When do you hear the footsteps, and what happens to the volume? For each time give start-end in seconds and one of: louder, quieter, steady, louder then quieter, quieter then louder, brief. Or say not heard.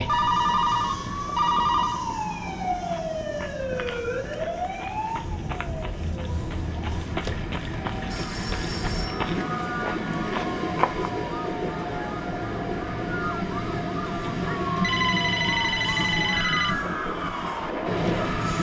2.8-11.1 louder.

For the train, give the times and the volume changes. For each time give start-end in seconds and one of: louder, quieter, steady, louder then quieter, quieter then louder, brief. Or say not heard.
0.0-18.5 louder.